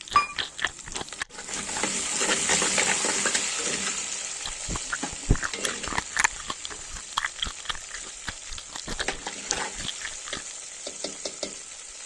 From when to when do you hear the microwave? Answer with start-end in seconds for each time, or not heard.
not heard.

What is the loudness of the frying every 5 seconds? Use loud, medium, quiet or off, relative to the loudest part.
loud, medium, medium.